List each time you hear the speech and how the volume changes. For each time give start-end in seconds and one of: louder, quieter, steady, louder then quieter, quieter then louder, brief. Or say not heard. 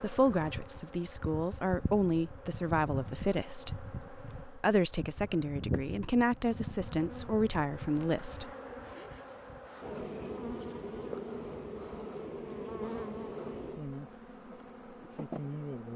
0.0-8.4 steady.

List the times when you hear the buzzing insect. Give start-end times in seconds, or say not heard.
0.0-15.9.